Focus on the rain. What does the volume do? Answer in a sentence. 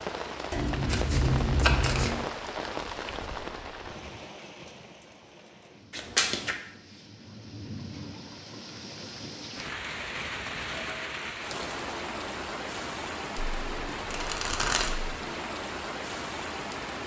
The loudness of the rain goes down, then up.